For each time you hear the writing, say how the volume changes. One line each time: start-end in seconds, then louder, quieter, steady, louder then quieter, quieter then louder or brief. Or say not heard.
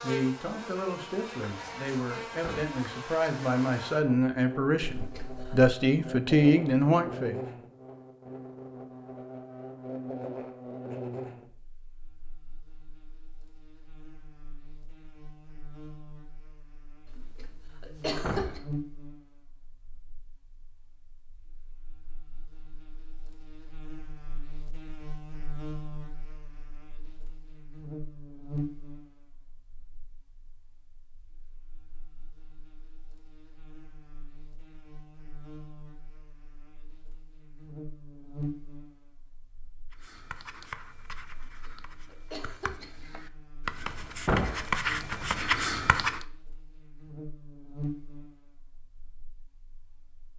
39.9-46.2 quieter then louder.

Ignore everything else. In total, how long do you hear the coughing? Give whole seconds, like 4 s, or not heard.
4 s.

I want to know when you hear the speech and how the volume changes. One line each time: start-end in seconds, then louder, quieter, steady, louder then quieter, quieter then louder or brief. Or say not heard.
0.0-7.4 louder.